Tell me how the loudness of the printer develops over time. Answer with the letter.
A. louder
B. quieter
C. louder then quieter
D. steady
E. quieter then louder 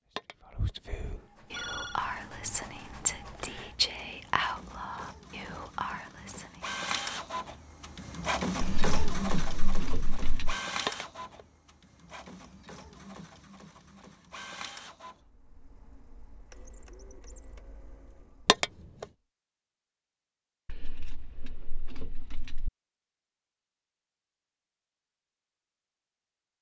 C.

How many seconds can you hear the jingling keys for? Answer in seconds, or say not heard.
4 s.